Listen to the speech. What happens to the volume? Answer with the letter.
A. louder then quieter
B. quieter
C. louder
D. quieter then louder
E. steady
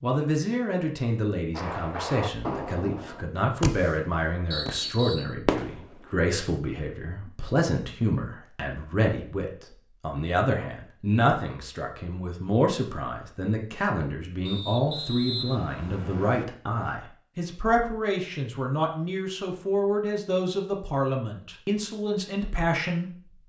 E.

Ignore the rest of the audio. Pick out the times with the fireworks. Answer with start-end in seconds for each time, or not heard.
1.6-6.2.